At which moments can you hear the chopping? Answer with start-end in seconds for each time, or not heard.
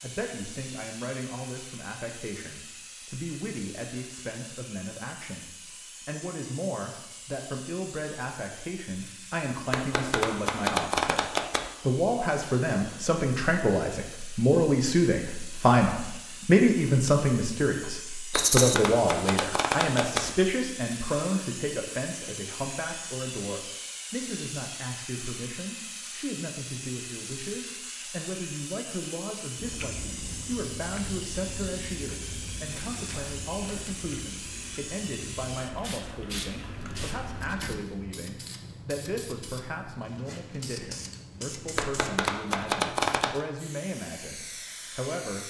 9.7-11.7, 18.3-20.3, 41.8-43.5.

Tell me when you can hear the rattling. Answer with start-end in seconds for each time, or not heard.
18.3-18.8.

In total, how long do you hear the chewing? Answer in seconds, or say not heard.
8 s.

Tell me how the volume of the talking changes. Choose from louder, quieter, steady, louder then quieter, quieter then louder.
louder then quieter.